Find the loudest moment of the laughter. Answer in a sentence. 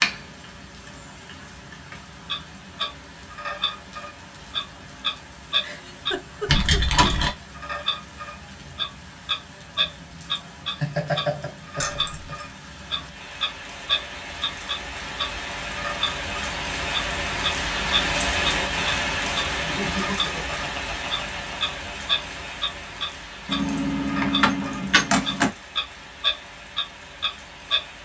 The volume of the laughter peaks at 11 seconds.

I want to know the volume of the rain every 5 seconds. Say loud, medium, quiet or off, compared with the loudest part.
quiet, quiet, quiet, loud, medium, quiet.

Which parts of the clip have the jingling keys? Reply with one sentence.
You can hear the jingling keys from 6.5 to 7.3 s, from 11.8 to 12.4 s and from 23.4 to 25.5 s.